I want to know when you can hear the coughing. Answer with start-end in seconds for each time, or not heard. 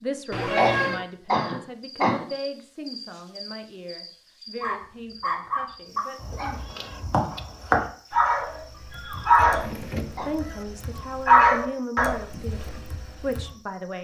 0.6-2.2, 9.4-10.4.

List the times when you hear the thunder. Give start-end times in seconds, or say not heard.
not heard.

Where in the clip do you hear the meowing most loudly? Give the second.
1 s.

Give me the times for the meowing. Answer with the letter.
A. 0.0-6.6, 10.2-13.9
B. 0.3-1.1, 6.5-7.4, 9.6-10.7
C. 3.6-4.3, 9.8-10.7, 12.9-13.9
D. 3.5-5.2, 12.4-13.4
B.